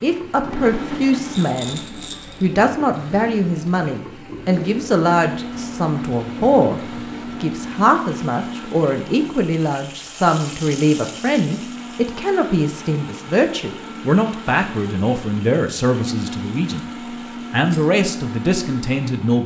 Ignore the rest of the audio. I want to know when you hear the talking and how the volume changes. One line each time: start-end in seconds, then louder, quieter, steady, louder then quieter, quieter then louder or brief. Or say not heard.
0.0-1.8 brief
2.4-16.9 steady
17.5-19.4 brief.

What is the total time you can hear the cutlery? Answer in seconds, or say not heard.
not heard.